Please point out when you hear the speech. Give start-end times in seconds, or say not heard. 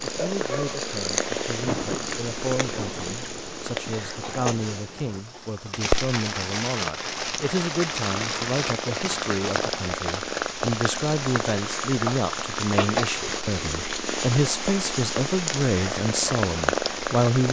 0.0-17.4.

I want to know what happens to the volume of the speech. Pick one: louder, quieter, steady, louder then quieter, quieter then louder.
louder.